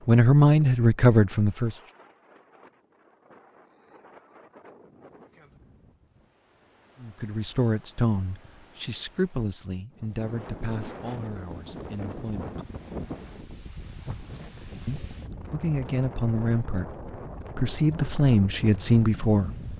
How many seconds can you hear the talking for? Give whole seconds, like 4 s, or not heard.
12 s.